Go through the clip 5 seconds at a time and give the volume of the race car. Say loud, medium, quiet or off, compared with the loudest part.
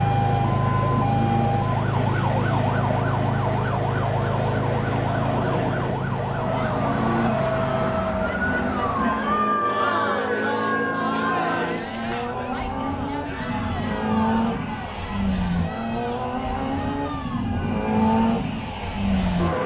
medium, medium, loud, loud.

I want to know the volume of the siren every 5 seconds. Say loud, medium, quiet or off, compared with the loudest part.
loud, loud, medium, off.